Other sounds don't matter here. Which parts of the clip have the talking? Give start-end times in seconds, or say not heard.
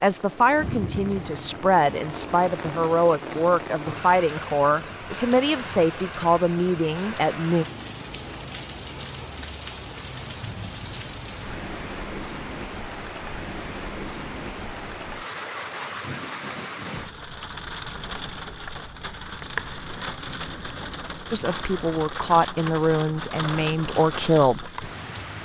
0.0-7.7, 21.3-24.8.